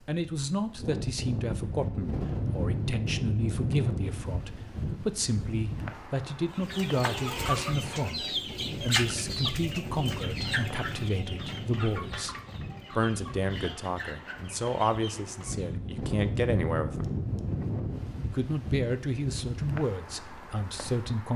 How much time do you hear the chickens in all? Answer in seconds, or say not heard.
9 s.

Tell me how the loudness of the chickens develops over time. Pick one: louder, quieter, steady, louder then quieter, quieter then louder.
quieter.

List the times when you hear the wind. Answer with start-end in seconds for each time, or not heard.
0.2-21.3.